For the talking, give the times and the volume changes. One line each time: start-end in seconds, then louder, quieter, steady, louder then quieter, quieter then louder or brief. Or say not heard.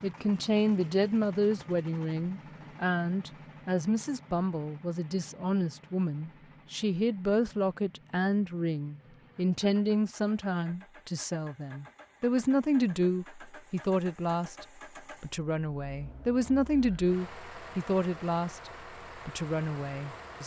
0.0-20.4 steady.